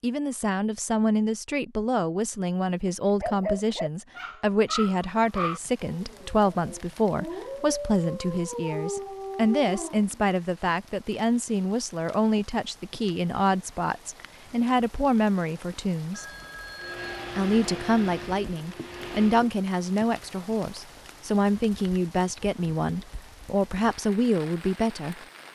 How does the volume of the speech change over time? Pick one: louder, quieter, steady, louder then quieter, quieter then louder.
steady.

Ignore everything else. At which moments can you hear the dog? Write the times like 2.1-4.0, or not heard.
3.2-10.2.